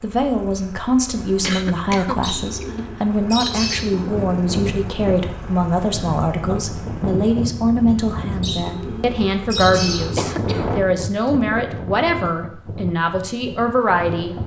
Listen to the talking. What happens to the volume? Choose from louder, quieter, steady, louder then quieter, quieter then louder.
steady.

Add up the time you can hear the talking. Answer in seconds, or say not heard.
14 s.